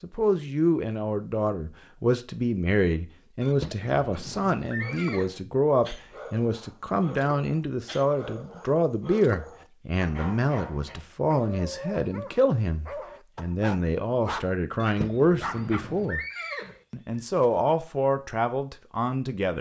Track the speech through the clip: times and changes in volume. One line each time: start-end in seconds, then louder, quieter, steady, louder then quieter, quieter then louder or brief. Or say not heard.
0.0-16.2 steady
16.9-19.5 brief.